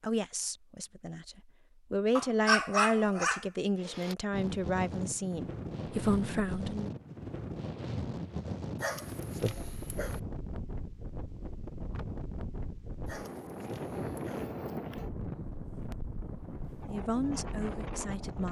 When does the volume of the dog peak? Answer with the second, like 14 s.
3 s.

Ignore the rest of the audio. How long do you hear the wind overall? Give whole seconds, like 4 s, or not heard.
14 s.